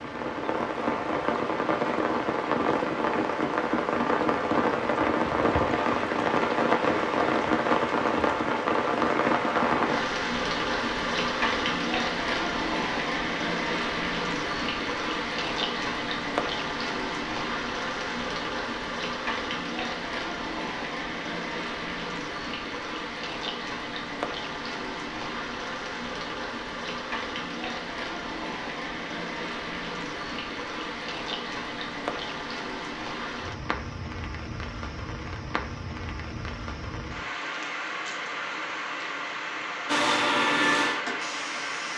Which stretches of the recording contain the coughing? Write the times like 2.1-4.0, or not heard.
not heard.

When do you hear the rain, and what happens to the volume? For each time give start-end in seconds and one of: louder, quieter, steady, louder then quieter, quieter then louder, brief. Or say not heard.
0.0-41.9 quieter.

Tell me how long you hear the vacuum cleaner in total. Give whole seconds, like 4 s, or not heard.
2 s.